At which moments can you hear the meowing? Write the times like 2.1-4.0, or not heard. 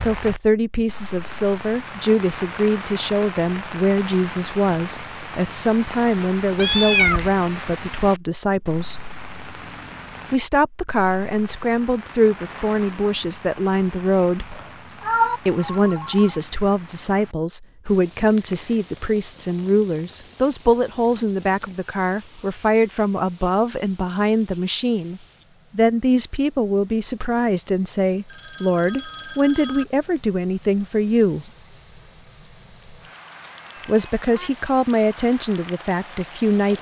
6.5-7.3, 14.5-15.4, 33.4-34.5.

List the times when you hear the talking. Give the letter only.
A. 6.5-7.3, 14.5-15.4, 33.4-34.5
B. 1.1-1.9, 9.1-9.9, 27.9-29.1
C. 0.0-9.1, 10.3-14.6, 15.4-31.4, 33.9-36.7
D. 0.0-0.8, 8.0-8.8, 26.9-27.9
C.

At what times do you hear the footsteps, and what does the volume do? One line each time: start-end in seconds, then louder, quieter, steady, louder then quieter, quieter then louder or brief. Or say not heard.
not heard.